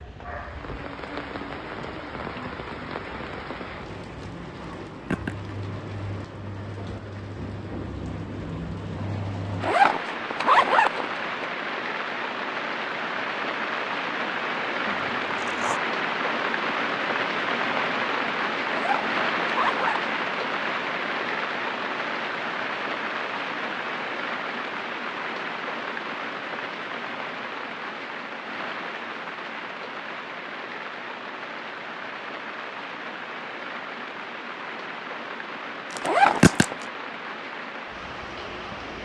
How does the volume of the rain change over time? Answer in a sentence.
The loudness of the rain goes up, then down.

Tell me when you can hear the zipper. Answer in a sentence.
You can hear the zipper from 9.6 to 11.4 s, from 18.7 to 20.1 s and from 36.0 to 36.8 s.